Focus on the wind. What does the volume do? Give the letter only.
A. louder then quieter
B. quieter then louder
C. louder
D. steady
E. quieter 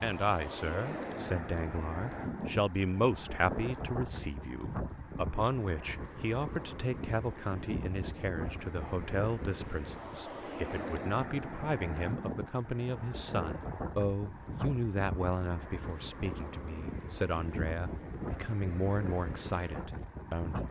D.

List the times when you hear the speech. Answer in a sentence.
You can hear the speech from 0.0 to 20.6 s.